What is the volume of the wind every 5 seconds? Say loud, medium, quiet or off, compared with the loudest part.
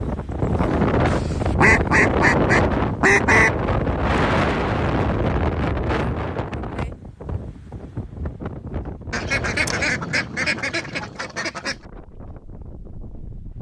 loud, medium, quiet.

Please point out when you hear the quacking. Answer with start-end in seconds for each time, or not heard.
1.1-3.5, 9.1-11.8.